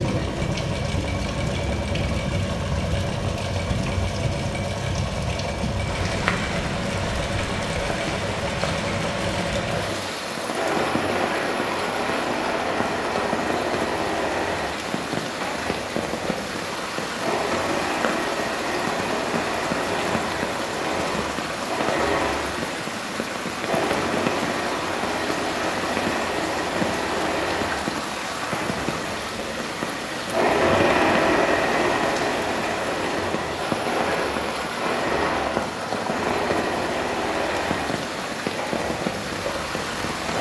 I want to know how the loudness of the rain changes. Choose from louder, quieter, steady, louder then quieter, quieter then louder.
steady.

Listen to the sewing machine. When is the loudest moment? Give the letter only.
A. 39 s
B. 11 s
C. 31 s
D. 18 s
C.